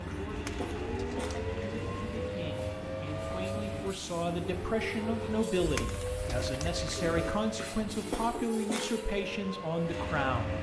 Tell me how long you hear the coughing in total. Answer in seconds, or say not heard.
3 s.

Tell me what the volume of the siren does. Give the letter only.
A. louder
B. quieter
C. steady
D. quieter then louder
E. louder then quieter
C.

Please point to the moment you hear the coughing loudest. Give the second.
8 s.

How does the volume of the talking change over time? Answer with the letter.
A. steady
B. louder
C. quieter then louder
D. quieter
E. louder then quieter
B.